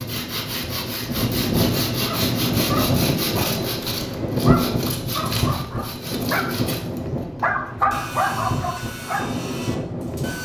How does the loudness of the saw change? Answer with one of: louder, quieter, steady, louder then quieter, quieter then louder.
quieter.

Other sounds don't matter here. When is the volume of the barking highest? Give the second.
8 s.